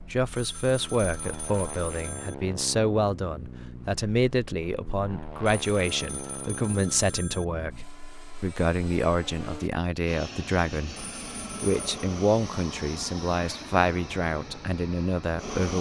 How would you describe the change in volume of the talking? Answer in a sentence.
The loudness of the talking stays about the same.